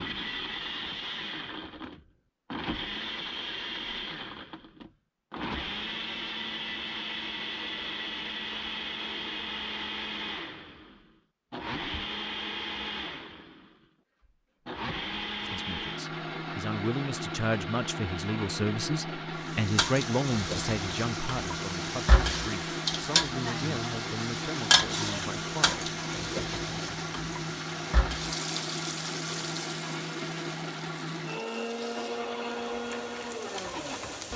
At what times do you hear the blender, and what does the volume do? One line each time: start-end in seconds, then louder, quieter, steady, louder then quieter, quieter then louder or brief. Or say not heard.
0.0-34.3 steady.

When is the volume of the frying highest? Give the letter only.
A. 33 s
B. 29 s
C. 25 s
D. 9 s
C.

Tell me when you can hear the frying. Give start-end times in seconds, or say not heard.
19.4-34.3.